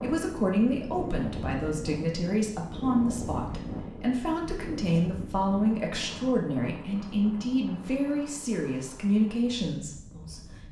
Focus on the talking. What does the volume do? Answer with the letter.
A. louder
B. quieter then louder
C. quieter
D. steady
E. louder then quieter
D.